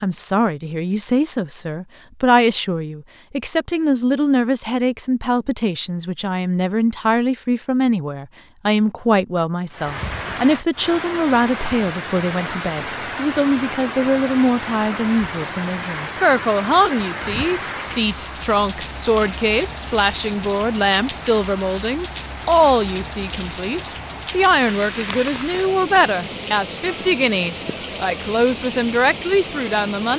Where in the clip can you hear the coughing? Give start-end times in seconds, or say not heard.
not heard.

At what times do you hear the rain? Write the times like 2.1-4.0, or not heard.
9.7-30.1.